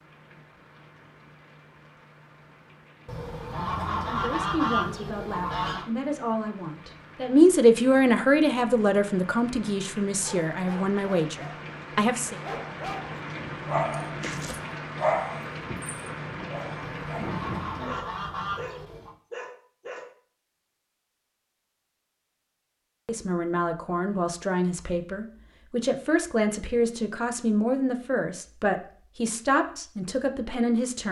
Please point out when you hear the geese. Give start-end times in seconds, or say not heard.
3.0-5.8, 16.8-19.1.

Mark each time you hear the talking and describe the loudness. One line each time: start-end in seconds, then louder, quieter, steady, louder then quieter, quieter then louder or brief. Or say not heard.
4.0-12.3 louder then quieter
23.1-31.0 steady.